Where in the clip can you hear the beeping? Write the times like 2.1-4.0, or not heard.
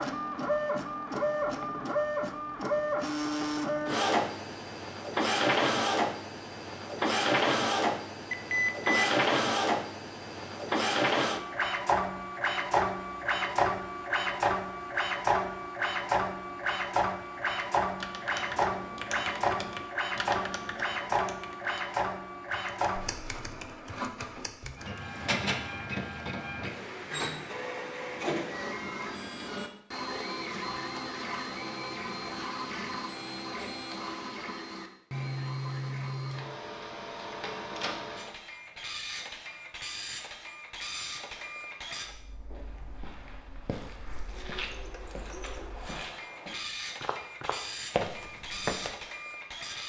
8.3-9.1.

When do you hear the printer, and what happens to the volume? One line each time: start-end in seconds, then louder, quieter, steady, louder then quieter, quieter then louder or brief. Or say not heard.
0.0-49.8 quieter.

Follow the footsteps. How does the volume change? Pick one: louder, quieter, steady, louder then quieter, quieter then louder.
louder.